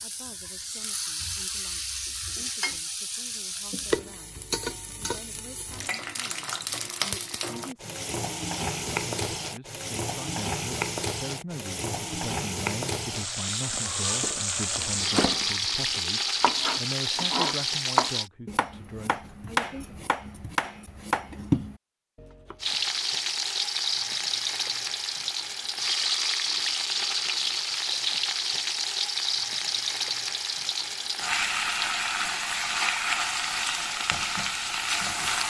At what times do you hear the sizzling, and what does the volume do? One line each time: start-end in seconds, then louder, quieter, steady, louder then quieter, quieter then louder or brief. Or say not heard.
0.0-18.3 louder
22.6-35.4 steady.